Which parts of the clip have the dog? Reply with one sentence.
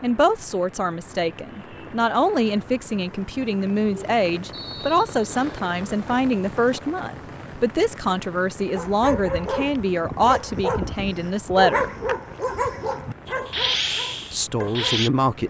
You can hear the dog from 8.7 to 15.1 s.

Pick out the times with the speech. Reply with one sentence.
You can hear the speech from 0.0 to 11.9 s and from 14.3 to 15.4 s.